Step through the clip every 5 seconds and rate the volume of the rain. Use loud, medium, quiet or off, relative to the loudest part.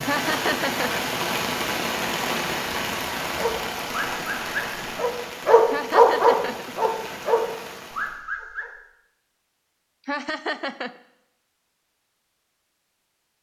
loud, medium, off.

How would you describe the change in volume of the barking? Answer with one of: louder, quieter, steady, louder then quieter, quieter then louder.
louder then quieter.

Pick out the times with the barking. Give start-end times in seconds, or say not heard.
3.4-8.7.